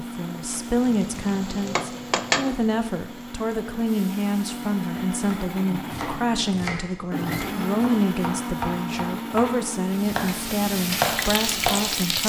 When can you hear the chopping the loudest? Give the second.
11 s.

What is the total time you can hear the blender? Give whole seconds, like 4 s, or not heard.
12 s.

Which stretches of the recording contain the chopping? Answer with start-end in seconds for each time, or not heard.
5.2-11.8.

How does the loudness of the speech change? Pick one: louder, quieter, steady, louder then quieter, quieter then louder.
steady.